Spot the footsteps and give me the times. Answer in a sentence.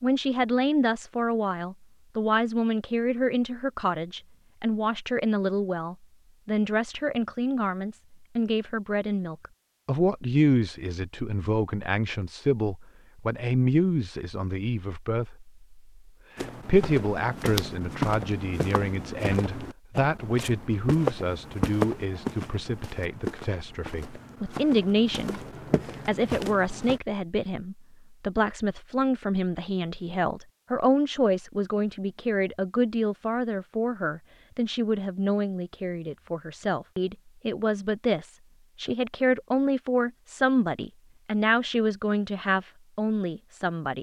You can hear the footsteps from 16.4 to 27.0 s.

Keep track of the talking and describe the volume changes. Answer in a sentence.
The volume of the talking stays about the same.